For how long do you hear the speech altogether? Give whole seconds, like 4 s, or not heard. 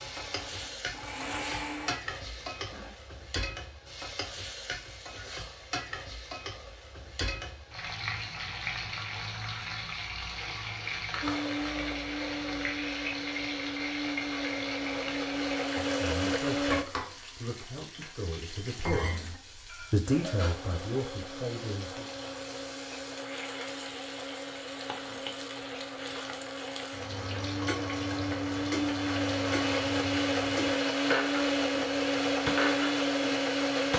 6 s.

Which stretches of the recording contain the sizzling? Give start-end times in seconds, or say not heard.
0.0-33.9.